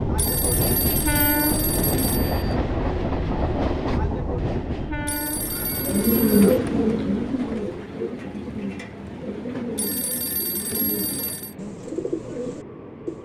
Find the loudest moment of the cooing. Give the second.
6 s.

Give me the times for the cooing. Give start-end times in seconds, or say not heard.
5.4-13.1.